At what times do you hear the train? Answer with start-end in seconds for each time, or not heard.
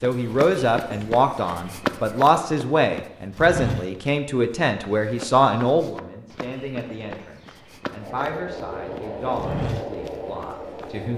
8.0-11.1.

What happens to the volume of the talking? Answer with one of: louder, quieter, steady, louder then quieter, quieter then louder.
quieter.